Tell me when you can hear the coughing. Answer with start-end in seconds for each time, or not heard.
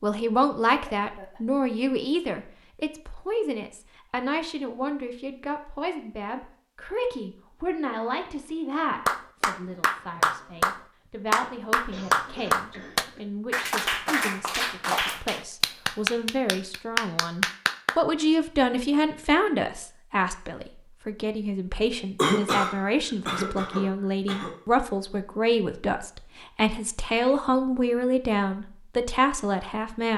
0.7-1.6, 11.9-13.2, 22.1-24.5.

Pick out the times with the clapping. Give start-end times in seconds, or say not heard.
8.8-17.9.